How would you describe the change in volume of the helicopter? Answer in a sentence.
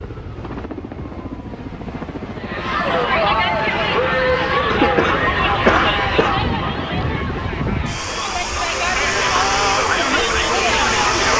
The loudness of the helicopter goes up.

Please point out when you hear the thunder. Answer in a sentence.
The thunder can be heard from 6.3 to 7.5 s.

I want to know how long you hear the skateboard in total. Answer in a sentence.
You can't hear the skateboard here.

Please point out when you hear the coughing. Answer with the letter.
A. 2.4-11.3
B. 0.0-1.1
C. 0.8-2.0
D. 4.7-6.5
D.